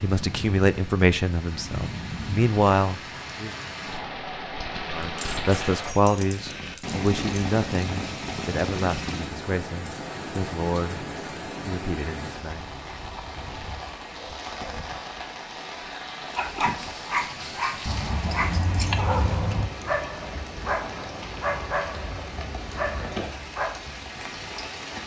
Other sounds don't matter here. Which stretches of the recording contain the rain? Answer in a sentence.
You can hear the rain from 0.0 to 25.0 s.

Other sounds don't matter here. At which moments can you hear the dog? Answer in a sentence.
You can hear the dog from 16.3 to 23.8 s.